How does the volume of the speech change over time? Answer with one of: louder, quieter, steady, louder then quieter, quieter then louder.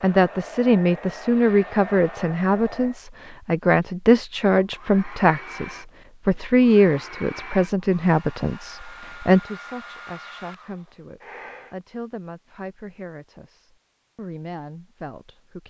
quieter.